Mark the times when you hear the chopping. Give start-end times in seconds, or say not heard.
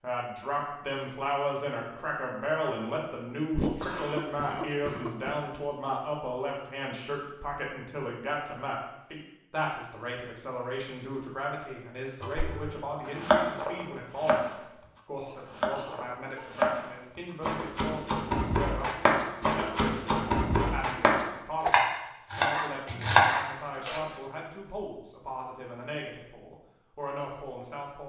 12.2-14.6, 15.3-24.0.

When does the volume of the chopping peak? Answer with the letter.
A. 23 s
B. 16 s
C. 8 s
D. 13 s
A.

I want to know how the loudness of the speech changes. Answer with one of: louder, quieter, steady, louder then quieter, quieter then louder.
quieter.